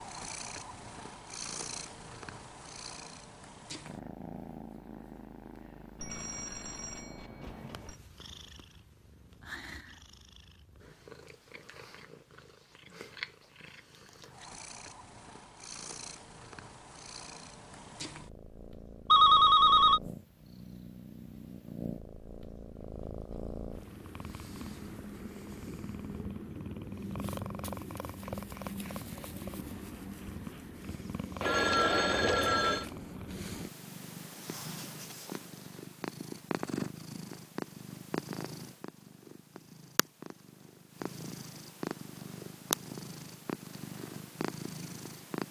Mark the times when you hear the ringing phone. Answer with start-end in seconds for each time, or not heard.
6.0-8.0, 19.1-20.0, 31.4-32.9.